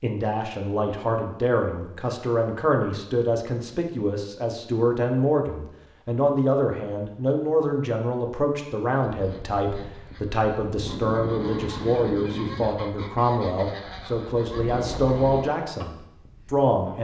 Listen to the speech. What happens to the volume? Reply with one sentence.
The loudness of the speech stays about the same.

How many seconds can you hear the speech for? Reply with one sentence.
You can hear the speech for 17 seconds altogether.